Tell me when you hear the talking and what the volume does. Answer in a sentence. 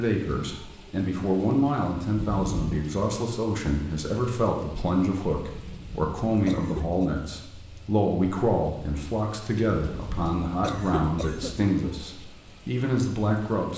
The talking can be heard from 0.0 to 13.7 s, at a steady volume.